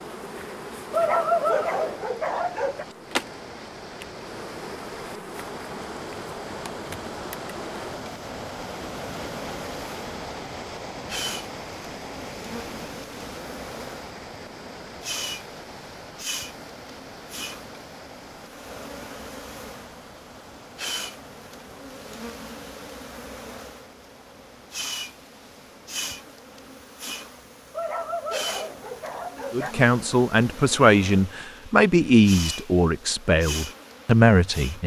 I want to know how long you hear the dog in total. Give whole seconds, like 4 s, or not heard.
4 s.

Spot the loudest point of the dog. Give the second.
1 s.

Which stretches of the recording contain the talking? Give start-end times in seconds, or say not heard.
29.5-34.8.